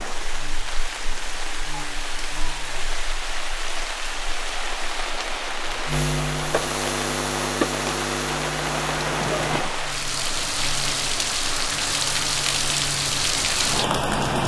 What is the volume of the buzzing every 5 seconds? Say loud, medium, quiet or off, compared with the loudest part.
quiet, loud, medium.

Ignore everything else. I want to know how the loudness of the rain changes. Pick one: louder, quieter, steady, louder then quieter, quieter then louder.
louder.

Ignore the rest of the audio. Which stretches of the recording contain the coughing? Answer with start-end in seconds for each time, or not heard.
not heard.